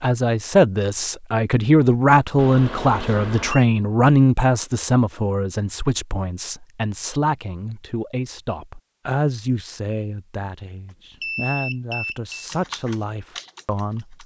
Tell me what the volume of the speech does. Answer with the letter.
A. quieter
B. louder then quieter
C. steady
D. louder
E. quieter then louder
A.